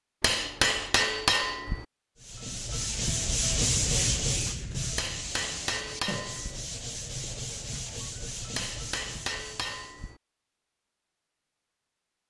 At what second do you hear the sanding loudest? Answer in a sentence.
The volume of the sanding peaks at 4 seconds.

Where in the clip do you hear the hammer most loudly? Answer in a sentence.
The loudest moment of the hammer is at 1 second.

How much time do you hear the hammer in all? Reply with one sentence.
The hammer can be heard for 5 seconds in total.